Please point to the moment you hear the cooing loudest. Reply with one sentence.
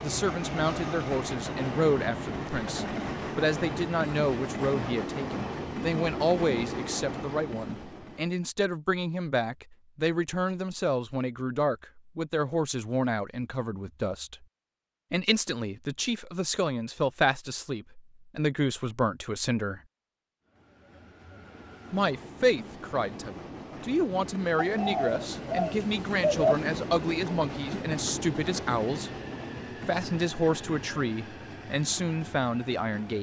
The loudest moment of the cooing is at 26 seconds.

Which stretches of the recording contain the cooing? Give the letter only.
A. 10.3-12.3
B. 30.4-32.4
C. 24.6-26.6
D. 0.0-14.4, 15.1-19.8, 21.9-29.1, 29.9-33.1
C.